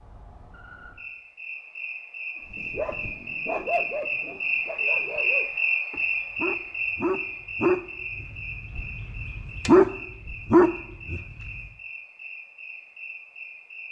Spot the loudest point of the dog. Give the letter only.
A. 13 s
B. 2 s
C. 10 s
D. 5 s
C.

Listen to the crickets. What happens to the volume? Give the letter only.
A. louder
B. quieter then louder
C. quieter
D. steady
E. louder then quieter
E.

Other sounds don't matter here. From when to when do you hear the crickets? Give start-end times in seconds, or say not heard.
0.0-13.8.